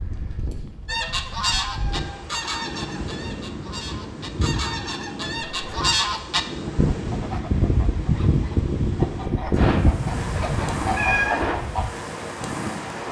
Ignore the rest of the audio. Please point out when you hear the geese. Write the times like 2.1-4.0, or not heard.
0.8-11.9.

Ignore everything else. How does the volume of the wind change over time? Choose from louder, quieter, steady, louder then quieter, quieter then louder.
louder.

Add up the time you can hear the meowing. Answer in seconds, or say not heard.
2 s.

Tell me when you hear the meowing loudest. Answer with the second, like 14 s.
11 s.